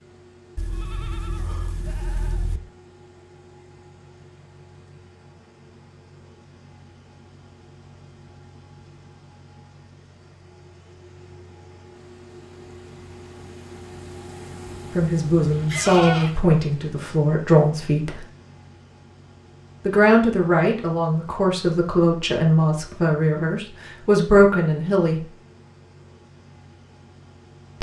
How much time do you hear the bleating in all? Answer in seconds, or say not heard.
4 s.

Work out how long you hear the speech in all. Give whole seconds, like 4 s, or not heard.
9 s.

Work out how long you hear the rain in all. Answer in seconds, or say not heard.
not heard.